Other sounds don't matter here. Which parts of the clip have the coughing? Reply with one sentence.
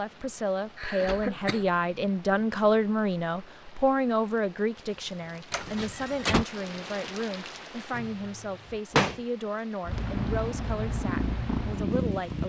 You can hear the coughing from 0.8 to 1.6 s.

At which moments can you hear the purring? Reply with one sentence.
The purring can be heard from 9.8 to 12.4 s.